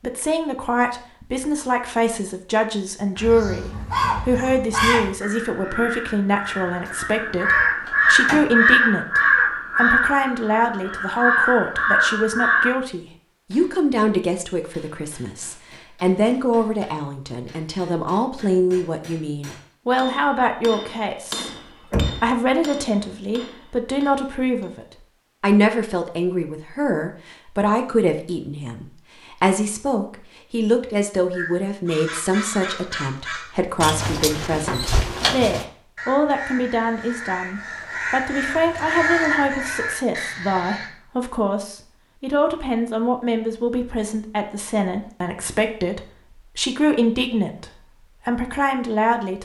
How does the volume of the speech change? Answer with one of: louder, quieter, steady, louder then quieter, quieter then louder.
steady.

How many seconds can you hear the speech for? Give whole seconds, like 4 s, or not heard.
49 s.